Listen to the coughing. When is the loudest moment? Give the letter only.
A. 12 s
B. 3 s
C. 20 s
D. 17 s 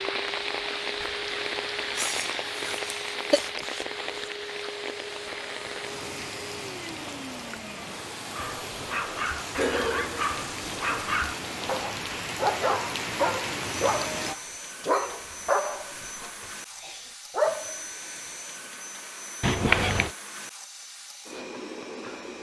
C.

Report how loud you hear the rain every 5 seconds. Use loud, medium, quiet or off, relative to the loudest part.
loud, medium, loud, off, off.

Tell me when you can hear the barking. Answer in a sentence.
You can hear the barking from 8.3 to 17.8 s.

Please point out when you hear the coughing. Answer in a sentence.
The coughing can be heard from 1.9 to 3.6 s and from 19.4 to 20.1 s.